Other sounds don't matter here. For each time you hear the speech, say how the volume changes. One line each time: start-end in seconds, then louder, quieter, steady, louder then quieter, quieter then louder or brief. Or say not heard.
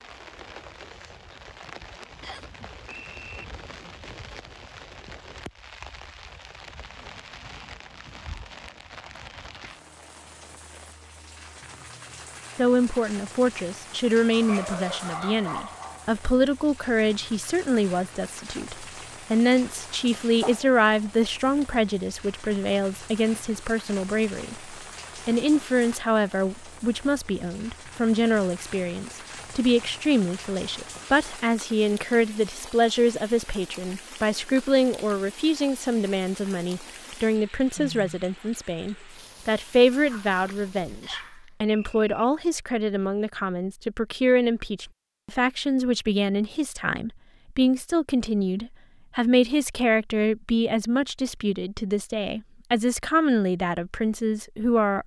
12.6-55.0 steady.